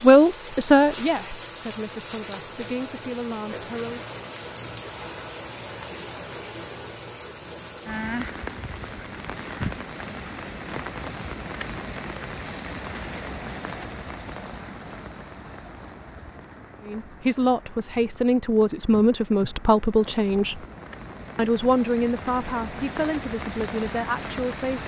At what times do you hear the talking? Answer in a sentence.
You can hear the talking from 0.0 to 4.0 s, from 16.8 to 20.6 s and from 21.4 to 24.8 s.